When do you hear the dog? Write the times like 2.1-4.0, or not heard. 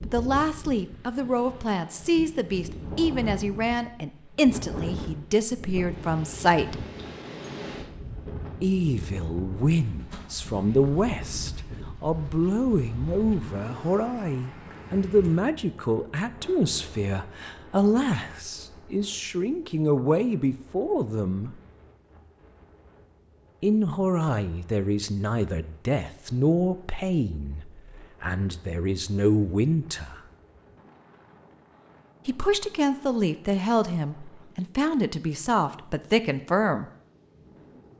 not heard.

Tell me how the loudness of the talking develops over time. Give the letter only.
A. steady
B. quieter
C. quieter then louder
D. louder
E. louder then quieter
A.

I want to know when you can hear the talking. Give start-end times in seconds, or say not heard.
0.0-6.8, 8.6-21.6, 23.6-30.2, 32.2-36.9.